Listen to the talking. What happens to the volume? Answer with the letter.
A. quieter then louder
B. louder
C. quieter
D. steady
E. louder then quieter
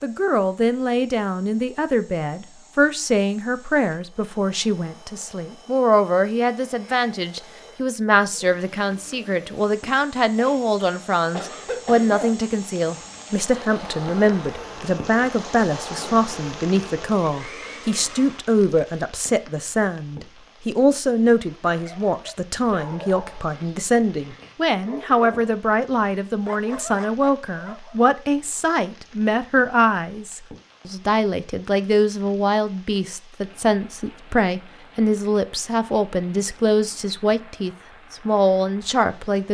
D.